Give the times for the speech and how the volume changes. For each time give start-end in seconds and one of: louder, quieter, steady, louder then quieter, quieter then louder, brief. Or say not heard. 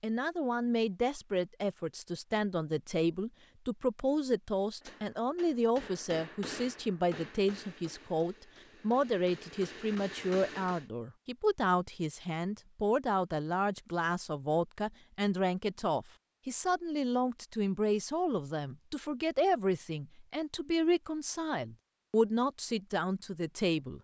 0.0-23.9 steady.